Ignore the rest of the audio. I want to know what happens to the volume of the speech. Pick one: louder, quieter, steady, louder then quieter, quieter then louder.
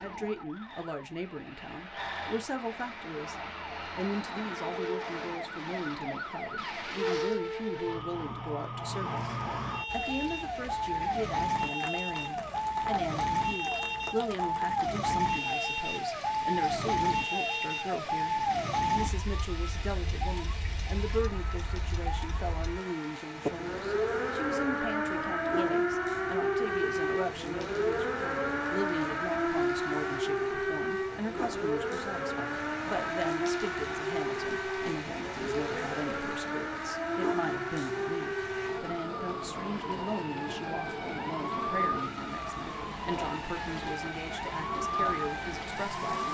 steady.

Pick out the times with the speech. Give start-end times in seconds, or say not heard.
0.0-46.2.